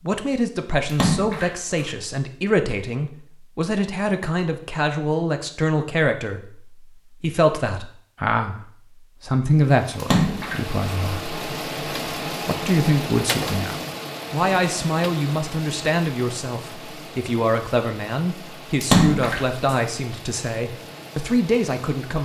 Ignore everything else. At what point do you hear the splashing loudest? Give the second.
19 s.